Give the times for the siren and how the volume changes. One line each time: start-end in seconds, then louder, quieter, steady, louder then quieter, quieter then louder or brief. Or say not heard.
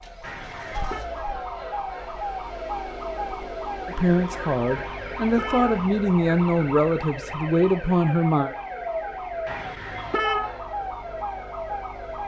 0.0-12.2 steady.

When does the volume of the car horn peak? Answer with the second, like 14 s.
10 s.